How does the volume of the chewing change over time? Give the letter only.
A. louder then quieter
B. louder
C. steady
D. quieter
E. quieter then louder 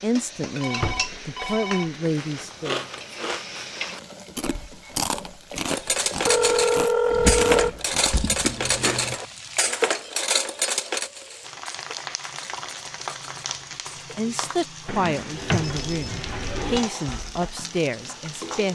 C.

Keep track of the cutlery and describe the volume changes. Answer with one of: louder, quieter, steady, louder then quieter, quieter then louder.
quieter.